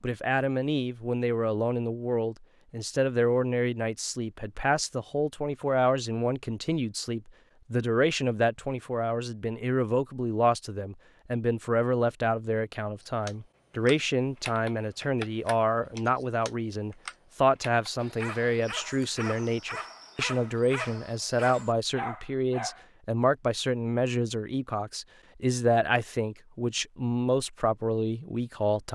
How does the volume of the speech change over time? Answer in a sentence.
The volume of the speech stays about the same.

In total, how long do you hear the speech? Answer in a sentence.
The speech can be heard for 29 seconds in total.